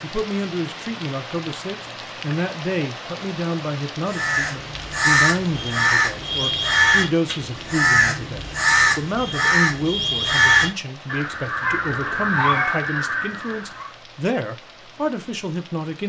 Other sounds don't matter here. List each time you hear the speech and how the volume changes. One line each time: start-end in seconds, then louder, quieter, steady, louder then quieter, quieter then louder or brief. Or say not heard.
0.0-16.0 steady.